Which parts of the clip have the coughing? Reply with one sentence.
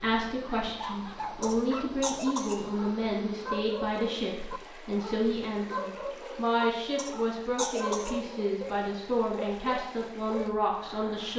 You can hear the coughing from 1.4 to 2.6 s and from 7.0 to 8.2 s.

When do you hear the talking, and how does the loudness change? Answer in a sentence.
You can hear the talking from 0.0 to 11.3 s, at a steady volume.